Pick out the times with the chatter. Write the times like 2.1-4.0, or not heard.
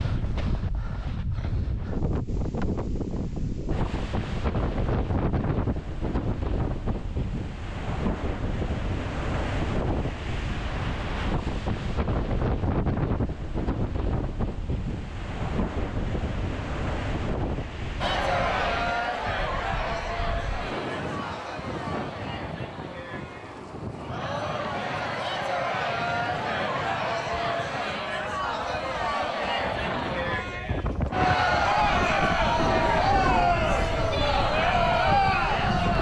18.0-35.9.